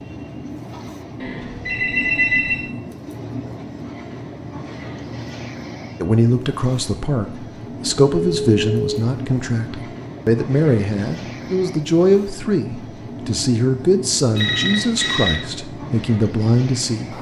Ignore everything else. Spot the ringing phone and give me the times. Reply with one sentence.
The ringing phone can be heard from 1.2 to 2.7 s, from 8.0 to 9.0 s and from 14.3 to 15.4 s.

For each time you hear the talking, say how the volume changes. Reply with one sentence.
The talking can be heard from 6.0 to 17.1 s, at a steady volume.